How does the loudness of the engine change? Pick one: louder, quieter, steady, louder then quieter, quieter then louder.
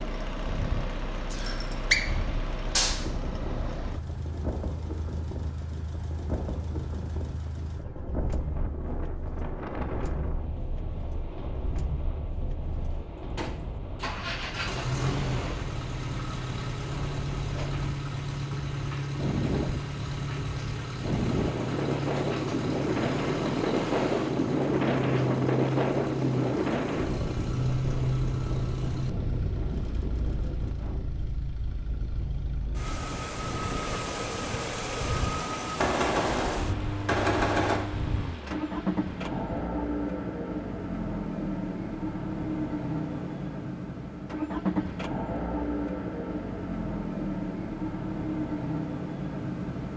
louder.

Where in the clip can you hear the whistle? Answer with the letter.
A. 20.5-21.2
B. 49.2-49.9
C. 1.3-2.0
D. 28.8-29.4
C.